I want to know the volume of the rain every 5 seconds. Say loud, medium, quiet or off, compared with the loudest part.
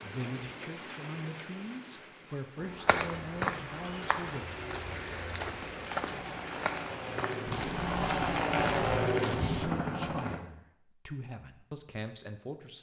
loud, loud, off.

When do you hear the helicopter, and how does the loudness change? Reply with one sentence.
You can hear the helicopter from 2.5 to 10.4 s, getting louder.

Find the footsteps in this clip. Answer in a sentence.
The footsteps can be heard from 2.9 to 9.7 s.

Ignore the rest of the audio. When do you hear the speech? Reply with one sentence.
The speech can be heard from 0.0 to 4.5 s and from 9.8 to 12.7 s.